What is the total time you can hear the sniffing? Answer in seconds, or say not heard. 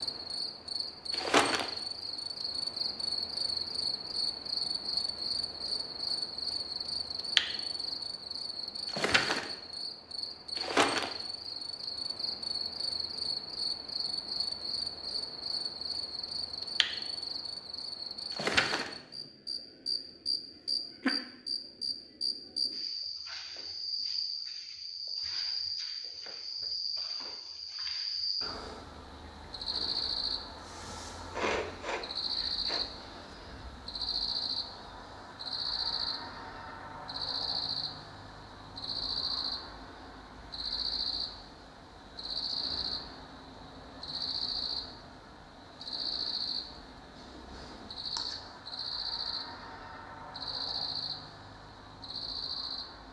2 s.